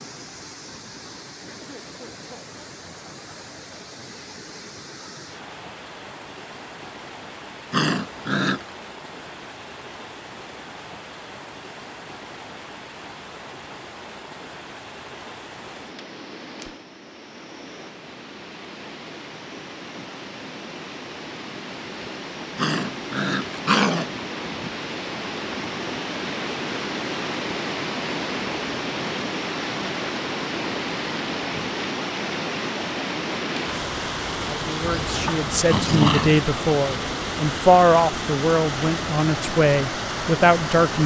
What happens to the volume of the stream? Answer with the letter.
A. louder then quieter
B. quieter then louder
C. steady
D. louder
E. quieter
D.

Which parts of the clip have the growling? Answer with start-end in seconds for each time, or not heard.
7.7-8.7, 22.6-24.1, 34.9-36.4.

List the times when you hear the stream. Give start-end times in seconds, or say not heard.
0.0-41.0.